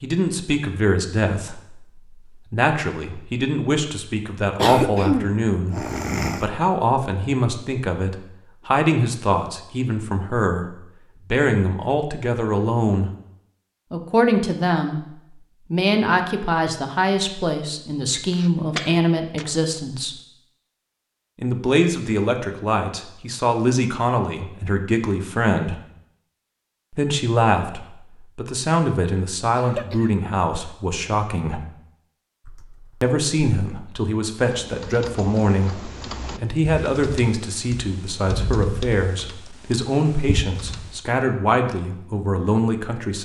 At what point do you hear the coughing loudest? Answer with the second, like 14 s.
5 s.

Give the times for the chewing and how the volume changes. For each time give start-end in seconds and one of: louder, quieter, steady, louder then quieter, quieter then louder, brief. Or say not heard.
not heard.